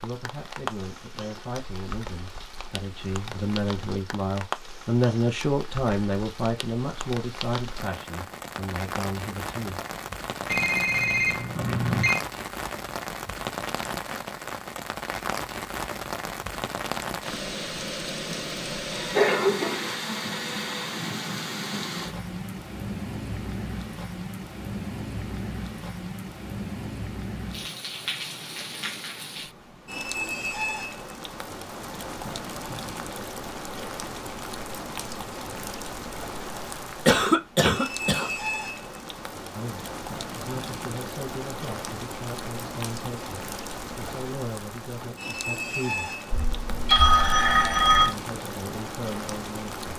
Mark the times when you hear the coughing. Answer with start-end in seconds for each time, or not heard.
37.0-38.3.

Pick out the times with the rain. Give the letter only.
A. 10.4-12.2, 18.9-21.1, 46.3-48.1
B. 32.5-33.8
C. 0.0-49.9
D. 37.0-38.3
C.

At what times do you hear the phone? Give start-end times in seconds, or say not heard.
10.4-12.2, 18.9-21.1, 46.3-48.1.